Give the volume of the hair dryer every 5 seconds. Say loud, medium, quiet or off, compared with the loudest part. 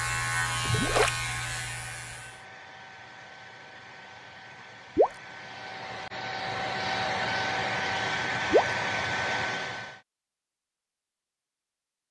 quiet, loud, off.